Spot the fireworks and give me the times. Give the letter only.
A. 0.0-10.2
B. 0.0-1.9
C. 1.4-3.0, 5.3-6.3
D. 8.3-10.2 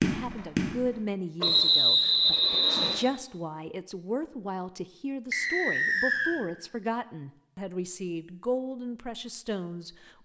B.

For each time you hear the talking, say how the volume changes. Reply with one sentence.
You can hear the talking from 0.0 to 10.2 s, at a steady volume.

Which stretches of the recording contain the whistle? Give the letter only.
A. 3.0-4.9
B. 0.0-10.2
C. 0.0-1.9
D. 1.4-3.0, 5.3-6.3
D.